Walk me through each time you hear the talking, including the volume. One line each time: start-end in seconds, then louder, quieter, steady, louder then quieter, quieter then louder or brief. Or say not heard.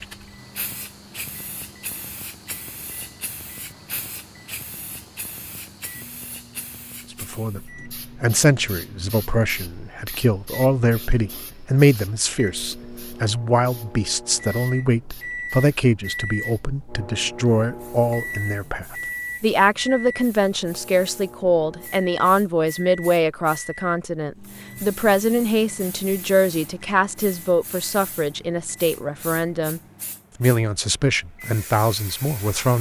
7.1-29.8 steady
30.4-32.7 brief.